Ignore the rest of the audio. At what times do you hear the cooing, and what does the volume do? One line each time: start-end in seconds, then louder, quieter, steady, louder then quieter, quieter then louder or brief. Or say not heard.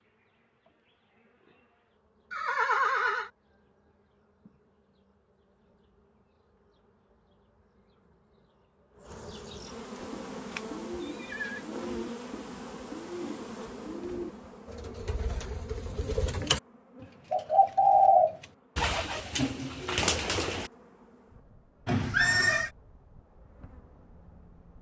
9.9-20.7 louder then quieter.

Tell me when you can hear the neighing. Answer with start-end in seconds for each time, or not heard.
2.3-3.3, 11.0-11.7, 21.9-22.7.